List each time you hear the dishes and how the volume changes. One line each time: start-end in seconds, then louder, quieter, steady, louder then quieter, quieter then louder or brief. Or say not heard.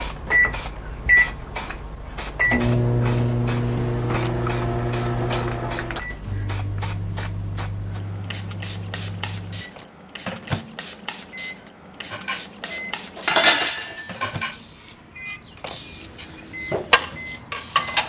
12.1-18.0 quieter then louder.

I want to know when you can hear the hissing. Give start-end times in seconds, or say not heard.
0.0-18.0.